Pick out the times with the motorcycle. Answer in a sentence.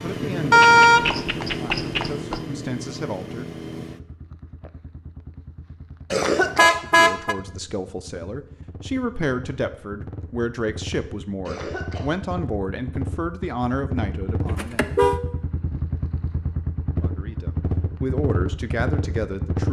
The motorcycle can be heard from 0.0 to 19.6 s.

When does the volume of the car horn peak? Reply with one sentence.
The loudest moment of the car horn is at 1 second.